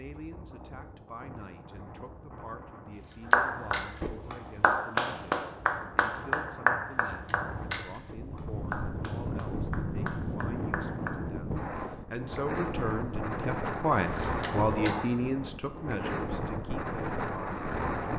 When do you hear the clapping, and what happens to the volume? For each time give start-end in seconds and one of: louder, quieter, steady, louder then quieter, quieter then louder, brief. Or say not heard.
3.3-11.2 quieter.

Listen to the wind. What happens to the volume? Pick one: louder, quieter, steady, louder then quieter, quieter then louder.
louder.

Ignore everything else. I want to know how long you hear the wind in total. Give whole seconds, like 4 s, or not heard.
18 s.